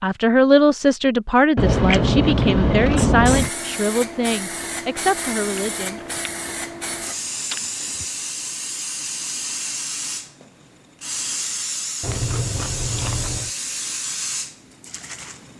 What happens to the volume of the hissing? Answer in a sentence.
The loudness of the hissing stays about the same.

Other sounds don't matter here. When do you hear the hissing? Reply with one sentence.
The hissing can be heard from 3.0 to 15.5 s.